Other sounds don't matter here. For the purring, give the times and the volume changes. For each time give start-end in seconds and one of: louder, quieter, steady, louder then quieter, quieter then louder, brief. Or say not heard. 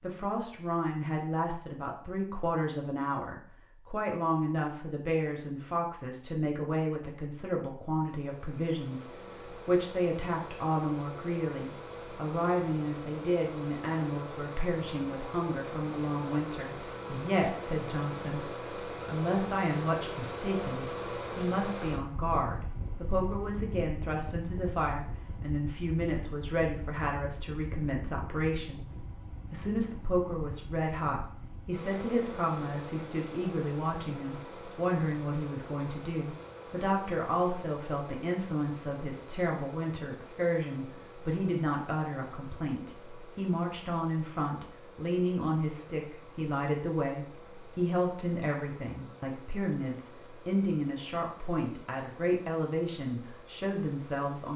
not heard.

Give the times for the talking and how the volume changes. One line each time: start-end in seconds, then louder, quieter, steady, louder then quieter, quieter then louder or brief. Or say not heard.
0.0-54.5 steady.